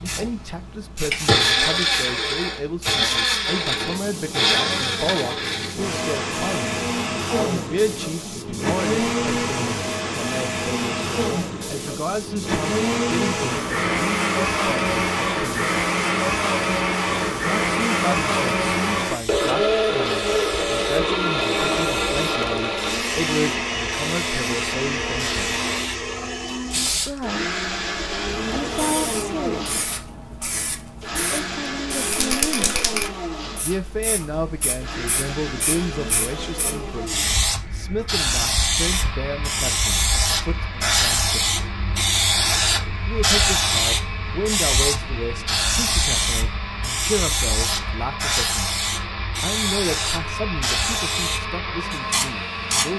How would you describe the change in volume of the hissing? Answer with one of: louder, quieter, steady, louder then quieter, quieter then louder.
louder.